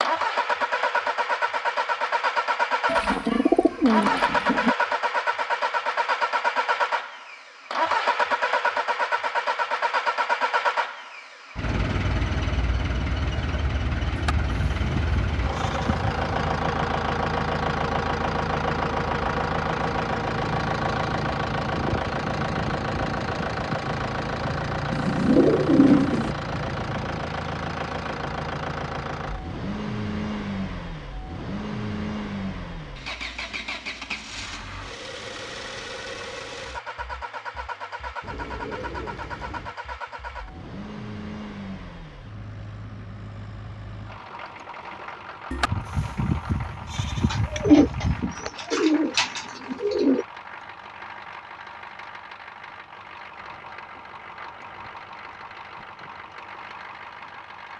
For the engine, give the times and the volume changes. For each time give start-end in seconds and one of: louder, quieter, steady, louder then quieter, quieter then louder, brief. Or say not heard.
0.0-57.7 quieter.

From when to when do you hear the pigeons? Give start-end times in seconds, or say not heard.
2.9-4.8, 24.9-26.4, 38.2-39.8, 47.3-50.2.